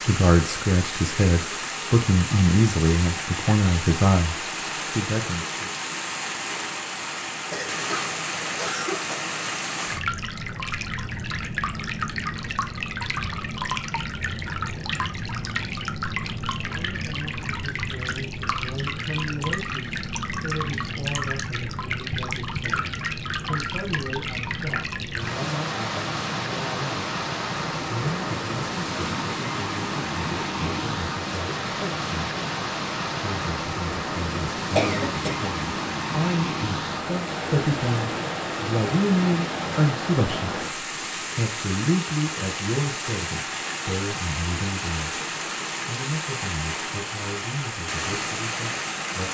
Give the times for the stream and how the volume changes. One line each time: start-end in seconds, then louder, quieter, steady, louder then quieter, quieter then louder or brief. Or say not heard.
0.0-49.2 steady.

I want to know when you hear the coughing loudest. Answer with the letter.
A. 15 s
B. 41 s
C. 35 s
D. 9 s
C.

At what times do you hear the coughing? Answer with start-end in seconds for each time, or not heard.
7.5-9.2, 34.8-35.4.